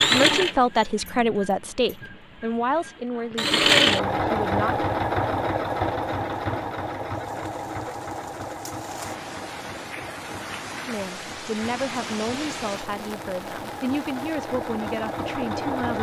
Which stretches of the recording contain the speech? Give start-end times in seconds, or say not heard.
0.0-4.8, 10.8-15.9.